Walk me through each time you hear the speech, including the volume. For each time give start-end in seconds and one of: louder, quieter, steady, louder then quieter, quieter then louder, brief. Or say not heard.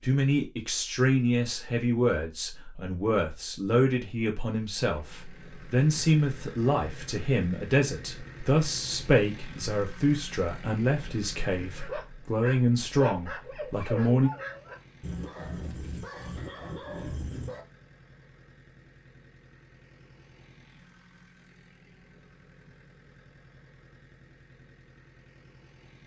0.0-14.3 steady.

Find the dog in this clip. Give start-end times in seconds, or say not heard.
11.8-17.6.